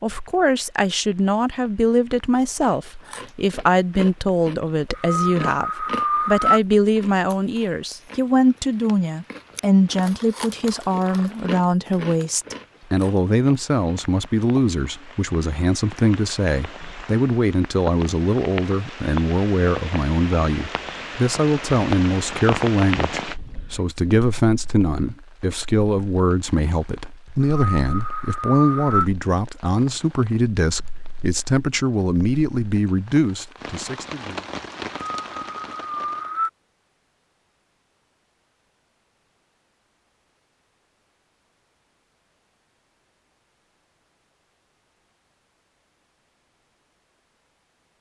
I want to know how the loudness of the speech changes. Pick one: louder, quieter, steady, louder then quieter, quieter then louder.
steady.